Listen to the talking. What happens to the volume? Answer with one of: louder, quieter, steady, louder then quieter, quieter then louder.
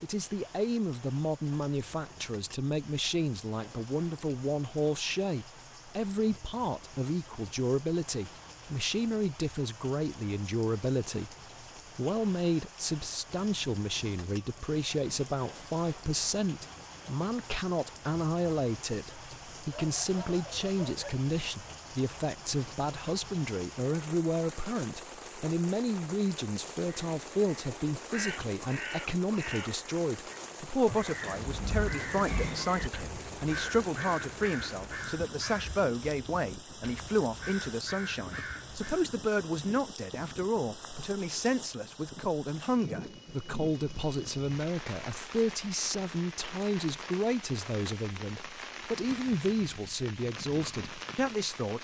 steady.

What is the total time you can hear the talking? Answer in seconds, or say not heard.
51 s.